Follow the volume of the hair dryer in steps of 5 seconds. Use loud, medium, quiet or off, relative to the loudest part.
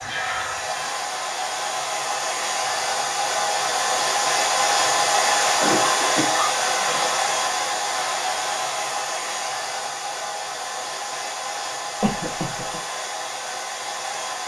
loud, loud, medium.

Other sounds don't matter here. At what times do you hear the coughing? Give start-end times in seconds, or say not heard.
0.0-0.9, 5.5-7.3, 12.0-12.8.